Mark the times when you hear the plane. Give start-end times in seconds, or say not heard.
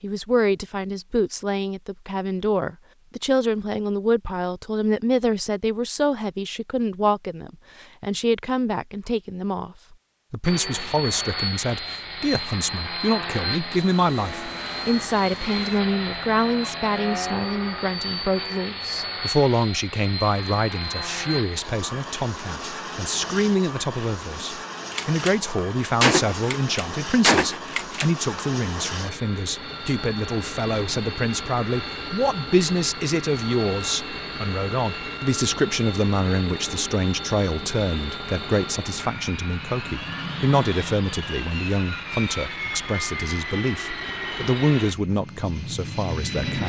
10.4-46.6.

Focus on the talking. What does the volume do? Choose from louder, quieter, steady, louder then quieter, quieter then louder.
steady.